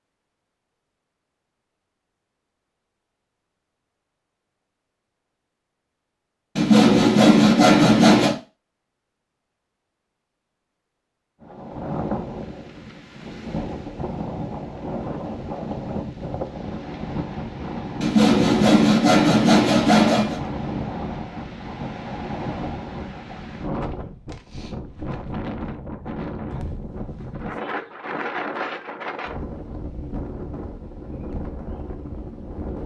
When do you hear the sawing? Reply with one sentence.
The sawing can be heard from 6.5 to 8.3 s and from 18.0 to 20.4 s.